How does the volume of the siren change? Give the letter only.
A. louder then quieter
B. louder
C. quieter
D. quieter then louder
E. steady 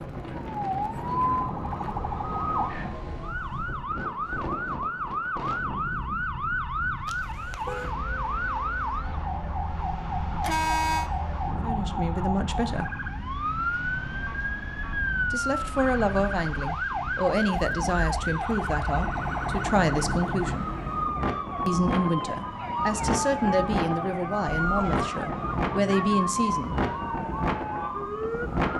E.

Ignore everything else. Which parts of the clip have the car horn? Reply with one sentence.
You can hear the car horn from 7.0 to 8.0 s, from 10.4 to 11.1 s and from 24.6 to 25.1 s.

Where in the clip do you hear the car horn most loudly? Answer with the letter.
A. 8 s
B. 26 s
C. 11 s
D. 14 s
C.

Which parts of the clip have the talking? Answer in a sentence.
You can hear the talking from 11.5 to 12.9 s, from 15.3 to 20.6 s and from 21.6 to 26.8 s.